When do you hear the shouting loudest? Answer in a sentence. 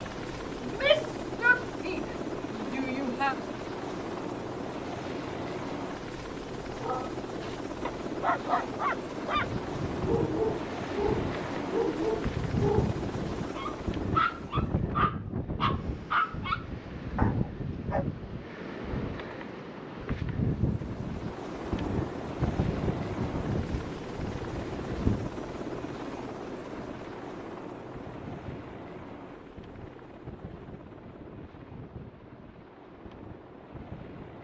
The volume of the shouting peaks at 1 second.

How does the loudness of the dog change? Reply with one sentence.
The loudness of the dog stays about the same.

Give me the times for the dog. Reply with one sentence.
You can hear the dog from 6.8 to 18.1 s.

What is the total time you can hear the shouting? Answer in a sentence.
You can hear the shouting for 3 seconds altogether.